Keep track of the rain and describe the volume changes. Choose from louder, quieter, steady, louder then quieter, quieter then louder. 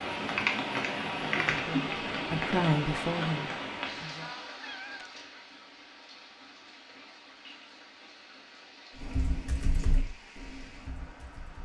quieter.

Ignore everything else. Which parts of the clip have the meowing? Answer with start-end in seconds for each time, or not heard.
4.2-5.4.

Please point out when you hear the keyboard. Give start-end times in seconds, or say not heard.
0.1-2.0, 9.0-11.6.